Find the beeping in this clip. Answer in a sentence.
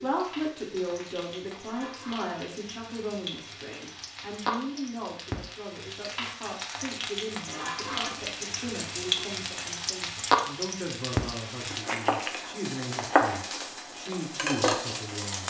You can't hear the beeping here.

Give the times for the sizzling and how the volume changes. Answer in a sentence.
The sizzling can be heard from 0.0 to 15.4 s, getting louder.